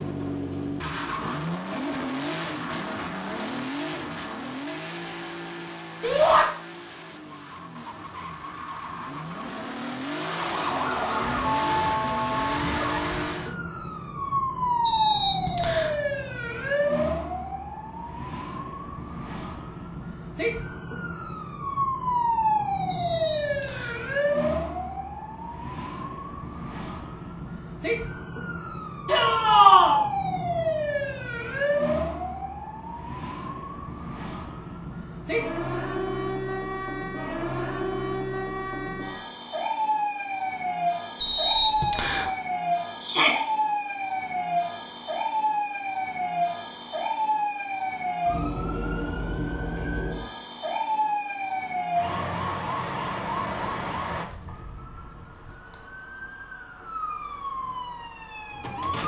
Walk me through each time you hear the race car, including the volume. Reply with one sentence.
The race car can be heard from 0.0 to 13.6 s, getting quieter then louder.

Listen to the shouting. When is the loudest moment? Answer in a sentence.
The loudest moment of the shouting is at 30 seconds.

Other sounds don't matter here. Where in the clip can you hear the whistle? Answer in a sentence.
The whistle can be heard from 14.8 to 15.9 s, from 22.9 to 24.0 s and from 41.1 to 42.3 s.